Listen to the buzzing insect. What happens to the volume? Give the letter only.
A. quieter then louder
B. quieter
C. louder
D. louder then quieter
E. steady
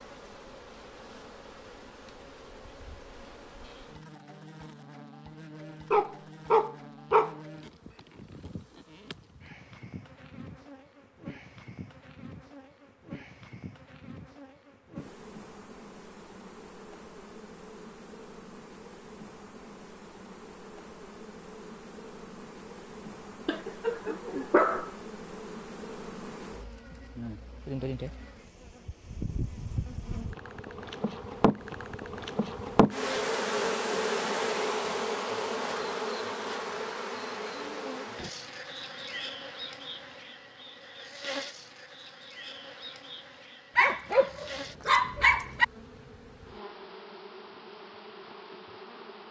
D.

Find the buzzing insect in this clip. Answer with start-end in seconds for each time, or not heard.
0.0-49.2.